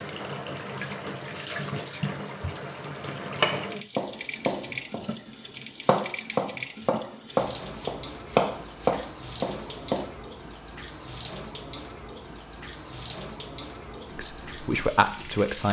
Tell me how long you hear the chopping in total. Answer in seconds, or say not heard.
7 s.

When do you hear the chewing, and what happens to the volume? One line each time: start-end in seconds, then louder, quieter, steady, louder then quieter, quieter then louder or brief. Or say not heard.
not heard.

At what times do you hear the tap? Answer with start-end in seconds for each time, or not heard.
0.0-15.6.